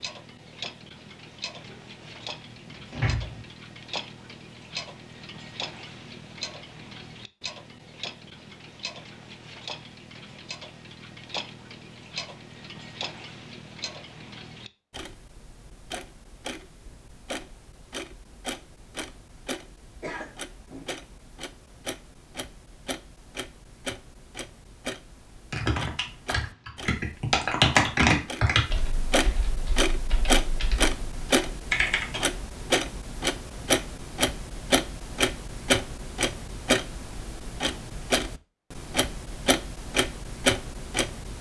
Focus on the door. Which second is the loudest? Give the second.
3 s.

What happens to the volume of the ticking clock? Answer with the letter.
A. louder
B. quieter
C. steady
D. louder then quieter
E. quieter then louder
A.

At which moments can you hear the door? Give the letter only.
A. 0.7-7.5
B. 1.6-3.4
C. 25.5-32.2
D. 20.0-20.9
B.